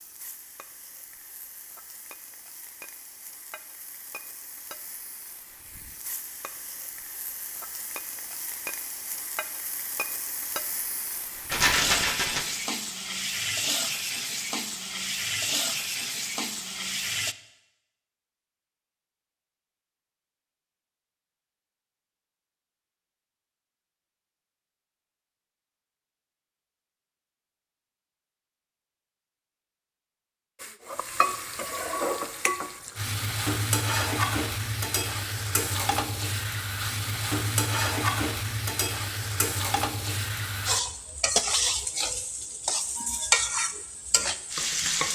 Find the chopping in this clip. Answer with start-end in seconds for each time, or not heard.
not heard.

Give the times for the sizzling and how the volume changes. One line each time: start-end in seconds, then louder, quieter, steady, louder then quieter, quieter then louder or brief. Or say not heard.
0.0-17.4 louder
30.6-45.1 steady.